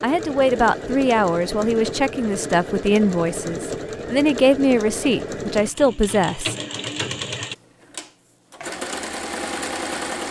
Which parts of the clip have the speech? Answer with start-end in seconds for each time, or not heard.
0.0-6.5.